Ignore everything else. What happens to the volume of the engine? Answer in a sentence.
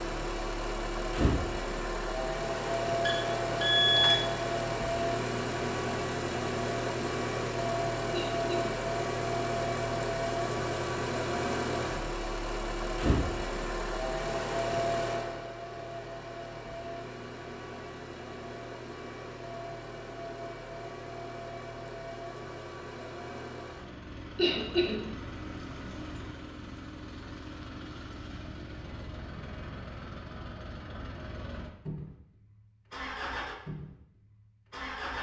The loudness of the engine goes down.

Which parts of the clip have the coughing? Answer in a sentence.
You can hear the coughing from 8.1 to 8.8 s and from 24.4 to 25.1 s.